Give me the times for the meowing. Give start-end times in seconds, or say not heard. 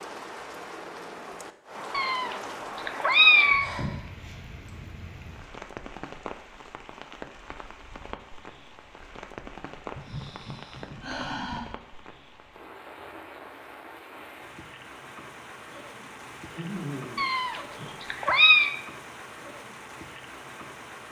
1.9-3.7, 17.1-18.8.